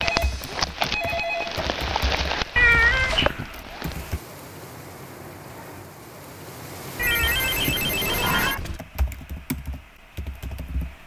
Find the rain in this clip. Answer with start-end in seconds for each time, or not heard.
0.0-8.6.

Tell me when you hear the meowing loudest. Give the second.
3 s.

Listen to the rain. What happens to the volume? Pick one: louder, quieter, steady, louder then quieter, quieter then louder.
quieter then louder.